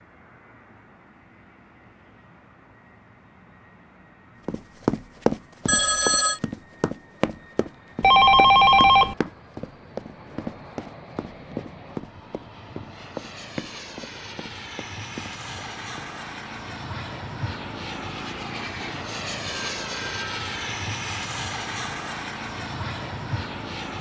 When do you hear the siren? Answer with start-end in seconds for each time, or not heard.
not heard.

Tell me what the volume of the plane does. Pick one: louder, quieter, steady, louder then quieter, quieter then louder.
louder.